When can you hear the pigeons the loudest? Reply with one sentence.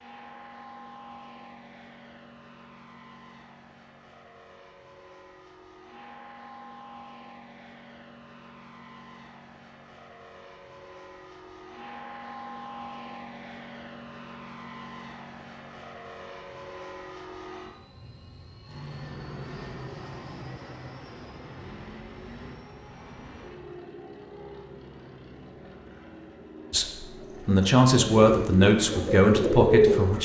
The volume of the pigeons peaks at 30 seconds.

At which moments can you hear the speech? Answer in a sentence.
The speech can be heard from 26.7 to 30.2 s.